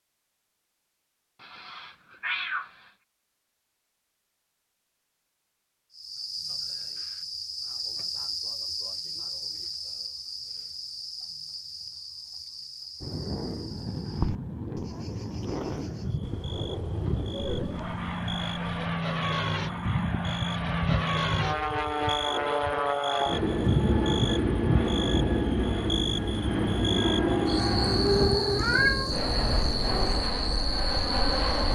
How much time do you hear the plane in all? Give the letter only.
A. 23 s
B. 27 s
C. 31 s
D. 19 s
D.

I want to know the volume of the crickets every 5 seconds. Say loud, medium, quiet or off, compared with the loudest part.
off, loud, medium, medium, loud, loud, loud.